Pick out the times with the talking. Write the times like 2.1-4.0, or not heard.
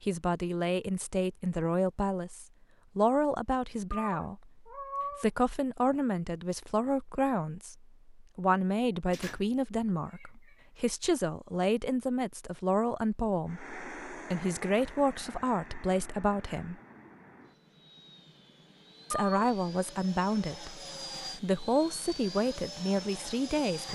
0.0-16.8, 19.1-23.9.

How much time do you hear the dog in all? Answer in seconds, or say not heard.
not heard.